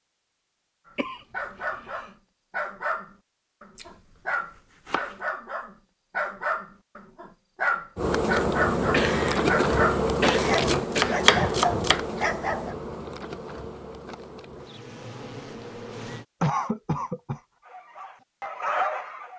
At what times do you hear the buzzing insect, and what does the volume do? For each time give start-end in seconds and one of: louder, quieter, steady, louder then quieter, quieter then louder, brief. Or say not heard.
8.0-16.2 quieter.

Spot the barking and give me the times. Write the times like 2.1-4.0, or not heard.
0.8-12.8, 17.6-19.3.